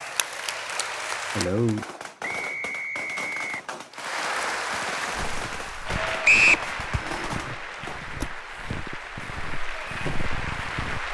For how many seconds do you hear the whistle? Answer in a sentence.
The whistle can be heard for 2 seconds in total.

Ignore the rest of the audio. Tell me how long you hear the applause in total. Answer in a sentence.
The applause can be heard for 9 seconds in total.